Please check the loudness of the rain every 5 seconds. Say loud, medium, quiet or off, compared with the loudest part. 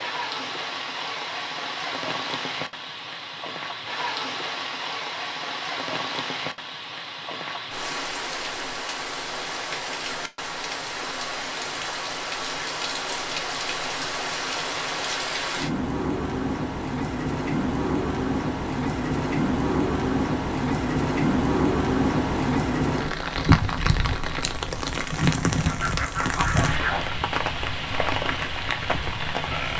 medium, medium, medium, loud, loud, loud.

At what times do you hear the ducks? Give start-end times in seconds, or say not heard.
25.6-27.2.